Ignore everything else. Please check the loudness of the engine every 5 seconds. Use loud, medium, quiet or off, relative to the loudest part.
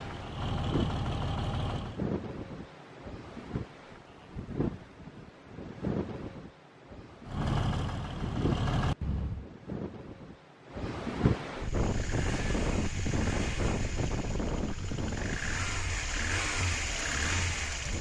loud, loud, medium, loud.